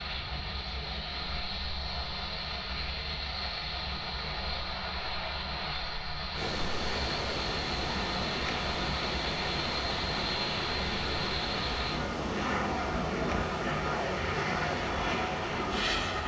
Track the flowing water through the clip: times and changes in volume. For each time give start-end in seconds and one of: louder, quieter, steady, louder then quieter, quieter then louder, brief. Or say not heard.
6.3-16.2 steady.